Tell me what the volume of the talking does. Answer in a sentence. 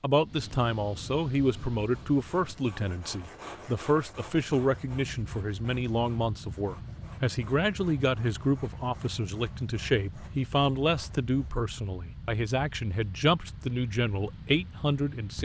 The volume of the talking stays about the same.